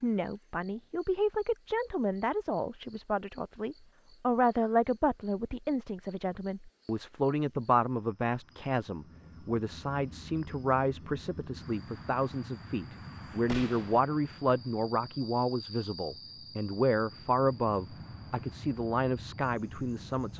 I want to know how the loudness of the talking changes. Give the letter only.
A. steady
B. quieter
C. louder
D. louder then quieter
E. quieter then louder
A.